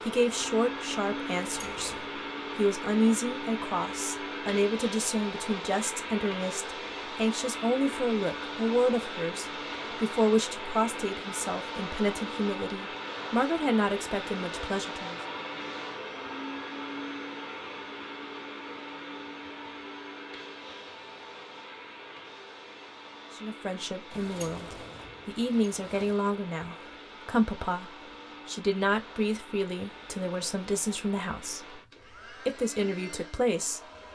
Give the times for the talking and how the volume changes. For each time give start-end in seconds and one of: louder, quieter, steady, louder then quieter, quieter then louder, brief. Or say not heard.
0.0-15.2 steady
23.4-33.8 steady.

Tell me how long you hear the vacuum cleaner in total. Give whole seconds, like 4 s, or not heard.
34 s.